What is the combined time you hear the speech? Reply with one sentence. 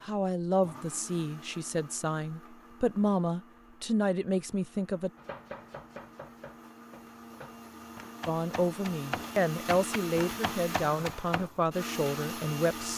The speech can be heard for 10 seconds in total.